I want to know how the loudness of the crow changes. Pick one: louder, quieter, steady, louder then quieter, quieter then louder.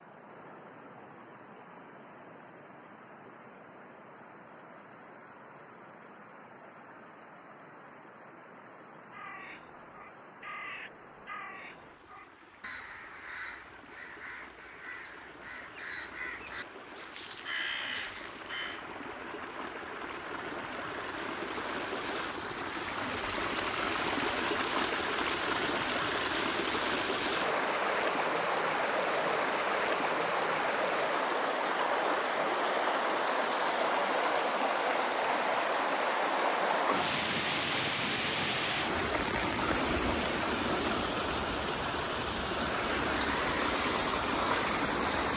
louder.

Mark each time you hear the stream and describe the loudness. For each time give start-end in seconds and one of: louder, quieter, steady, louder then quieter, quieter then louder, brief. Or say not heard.
0.0-45.3 louder.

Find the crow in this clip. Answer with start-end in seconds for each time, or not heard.
9.1-18.9.